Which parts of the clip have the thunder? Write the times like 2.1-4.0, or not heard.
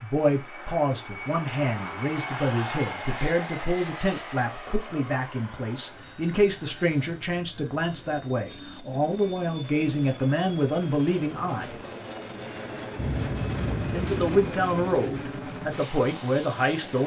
12.9-14.4.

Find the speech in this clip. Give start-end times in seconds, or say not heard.
0.0-11.9, 13.9-17.0.